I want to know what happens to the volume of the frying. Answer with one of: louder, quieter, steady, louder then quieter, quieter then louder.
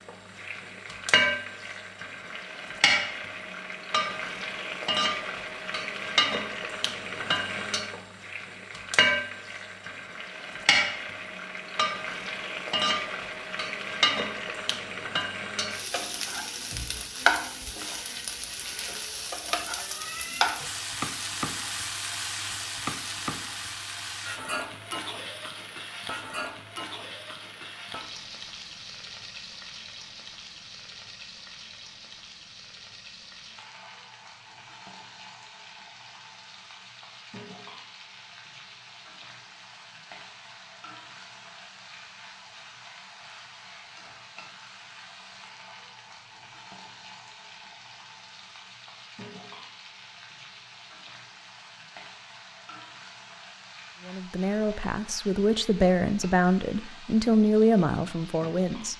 quieter.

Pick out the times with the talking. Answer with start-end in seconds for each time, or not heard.
54.0-58.9.